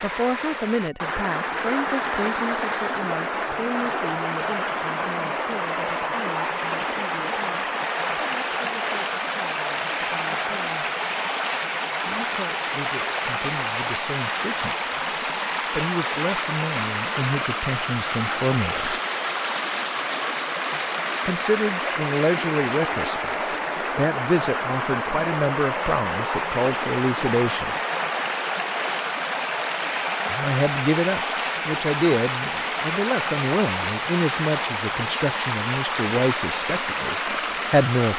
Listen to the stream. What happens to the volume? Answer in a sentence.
The loudness of the stream stays about the same.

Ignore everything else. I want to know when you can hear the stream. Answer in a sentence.
The stream can be heard from 0.0 to 38.1 s.